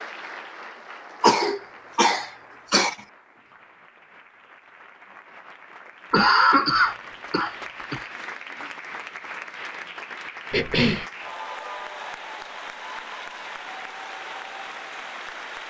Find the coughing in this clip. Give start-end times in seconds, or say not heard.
1.2-3.0, 6.1-8.0, 10.5-11.1.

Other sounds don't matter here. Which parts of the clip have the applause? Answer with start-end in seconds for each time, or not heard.
0.0-15.6.